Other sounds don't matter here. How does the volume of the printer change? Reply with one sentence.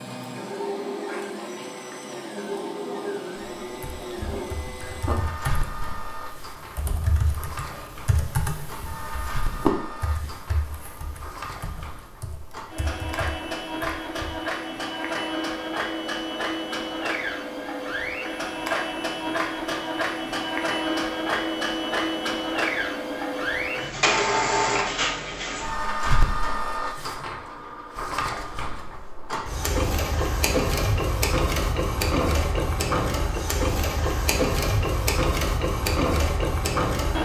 The loudness of the printer goes up.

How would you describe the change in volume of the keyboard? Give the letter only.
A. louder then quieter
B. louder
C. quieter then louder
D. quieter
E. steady
A.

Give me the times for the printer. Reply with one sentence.
You can hear the printer from 0.0 to 37.2 s.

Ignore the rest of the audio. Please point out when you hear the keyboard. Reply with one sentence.
The keyboard can be heard from 3.6 to 14.4 s.